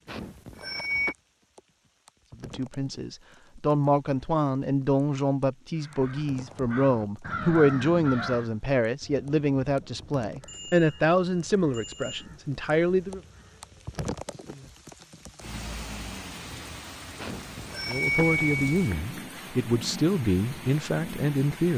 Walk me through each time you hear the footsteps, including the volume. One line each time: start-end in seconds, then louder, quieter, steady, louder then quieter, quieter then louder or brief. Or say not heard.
not heard.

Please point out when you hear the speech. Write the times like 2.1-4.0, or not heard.
2.4-13.2, 17.9-21.7.